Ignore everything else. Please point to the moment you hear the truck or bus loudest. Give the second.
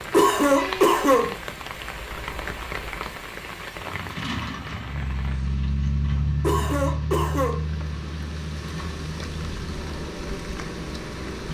6 s.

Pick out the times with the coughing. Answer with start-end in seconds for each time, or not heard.
0.1-1.4, 6.4-7.7.